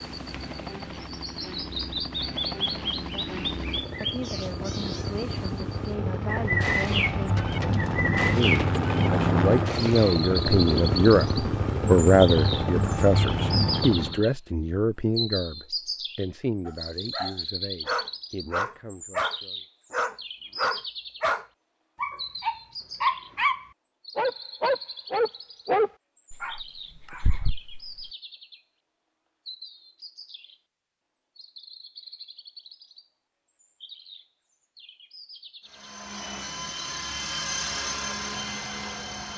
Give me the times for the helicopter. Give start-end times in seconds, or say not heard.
0.0-14.2, 35.6-39.3.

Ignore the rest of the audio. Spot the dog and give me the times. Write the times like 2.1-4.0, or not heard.
16.6-28.1.